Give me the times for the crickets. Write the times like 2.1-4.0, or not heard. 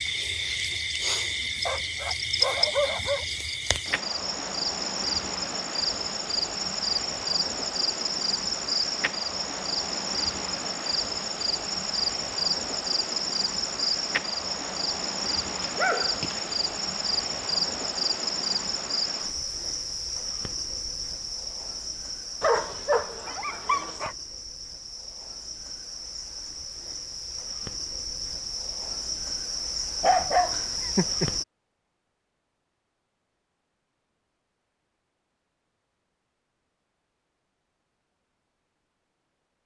0.0-31.4.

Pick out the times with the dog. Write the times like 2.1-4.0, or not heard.
1.6-3.2, 15.6-16.5, 22.4-24.1, 30.0-31.3.